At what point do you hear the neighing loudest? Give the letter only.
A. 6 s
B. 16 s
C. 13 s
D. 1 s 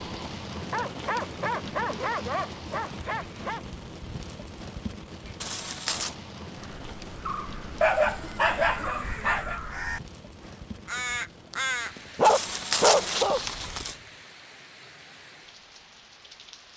C.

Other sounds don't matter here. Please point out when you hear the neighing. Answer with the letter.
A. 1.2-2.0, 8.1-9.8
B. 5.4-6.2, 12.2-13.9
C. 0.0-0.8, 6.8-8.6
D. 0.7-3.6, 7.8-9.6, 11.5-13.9
B.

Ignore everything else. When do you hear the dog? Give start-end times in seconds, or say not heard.
0.7-3.6, 7.8-9.6, 11.5-13.9.